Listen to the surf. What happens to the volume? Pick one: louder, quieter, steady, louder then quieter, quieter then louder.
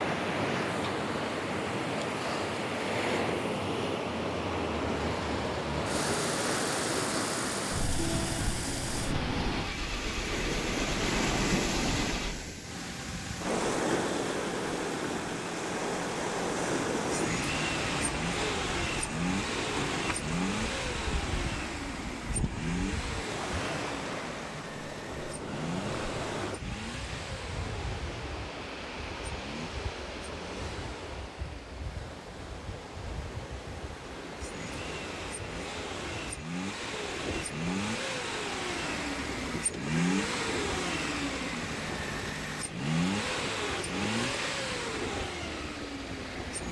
quieter.